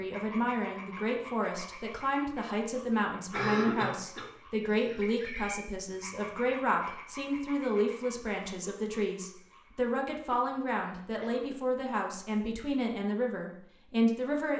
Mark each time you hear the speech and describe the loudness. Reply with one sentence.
You can hear the speech from 0.0 to 14.5 s, at a steady volume.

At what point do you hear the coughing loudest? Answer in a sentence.
The loudest moment of the coughing is at 4 seconds.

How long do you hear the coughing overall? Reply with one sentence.
You can hear the coughing for 2 seconds altogether.